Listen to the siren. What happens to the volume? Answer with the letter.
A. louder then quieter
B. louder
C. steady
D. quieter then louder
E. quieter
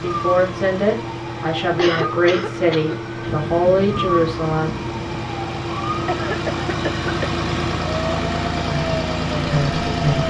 C.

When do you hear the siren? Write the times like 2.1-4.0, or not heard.
0.0-10.2.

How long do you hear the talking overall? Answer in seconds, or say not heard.
6 s.